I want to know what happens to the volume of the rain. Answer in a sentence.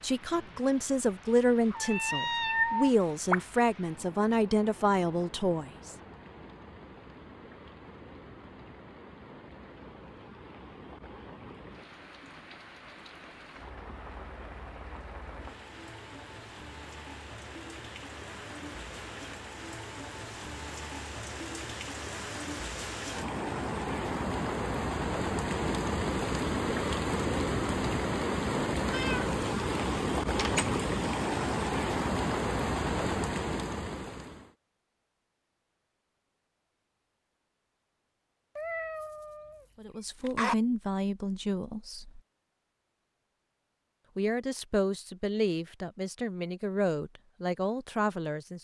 The volume of the rain goes up.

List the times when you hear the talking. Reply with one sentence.
The talking can be heard from 0.0 to 6.0 s, from 39.8 to 42.2 s and from 44.1 to 48.5 s.